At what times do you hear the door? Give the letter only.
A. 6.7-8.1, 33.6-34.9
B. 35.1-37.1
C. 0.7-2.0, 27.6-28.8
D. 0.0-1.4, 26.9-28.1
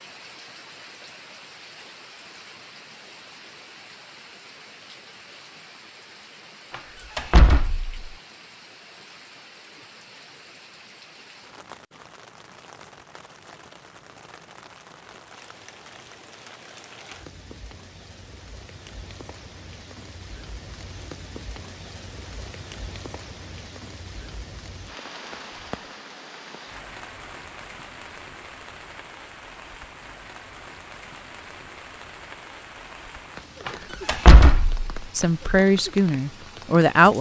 A.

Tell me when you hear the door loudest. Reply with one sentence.
The loudest moment of the door is at 34 seconds.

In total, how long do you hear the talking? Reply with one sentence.
You can hear the talking for 2 seconds altogether.